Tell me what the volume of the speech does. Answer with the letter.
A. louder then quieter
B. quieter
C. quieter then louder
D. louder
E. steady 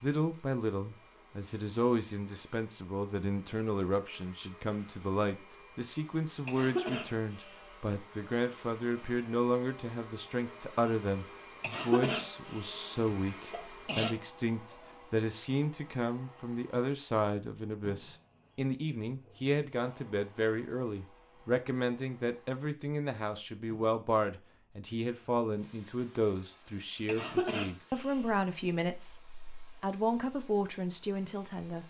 E.